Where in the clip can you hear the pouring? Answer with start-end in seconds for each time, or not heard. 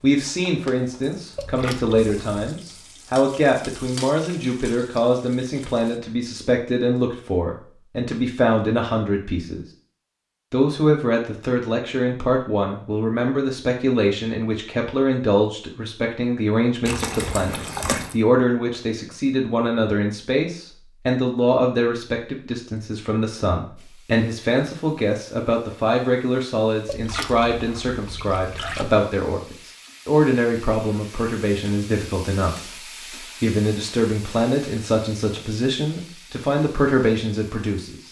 1.4-2.5, 16.9-18.1, 26.9-28.9.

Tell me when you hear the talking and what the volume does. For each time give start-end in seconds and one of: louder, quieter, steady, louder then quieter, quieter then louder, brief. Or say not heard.
0.0-9.7 steady
10.5-38.0 steady.